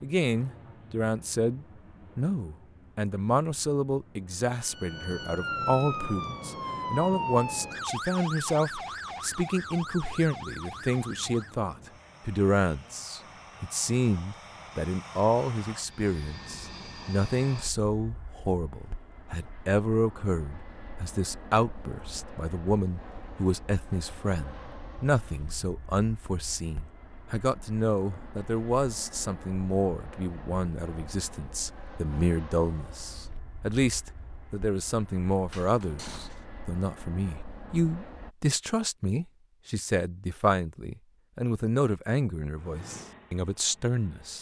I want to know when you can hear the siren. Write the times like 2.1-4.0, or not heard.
4.5-11.7.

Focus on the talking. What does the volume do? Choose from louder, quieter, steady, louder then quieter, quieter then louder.
steady.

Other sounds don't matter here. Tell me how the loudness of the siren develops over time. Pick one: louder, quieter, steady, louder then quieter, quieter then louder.
quieter.